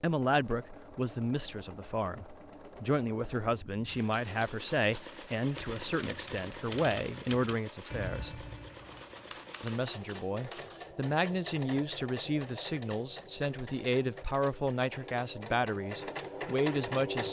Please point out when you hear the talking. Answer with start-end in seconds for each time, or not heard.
0.0-8.4, 9.6-17.2.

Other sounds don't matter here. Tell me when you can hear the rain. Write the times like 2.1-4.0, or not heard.
not heard.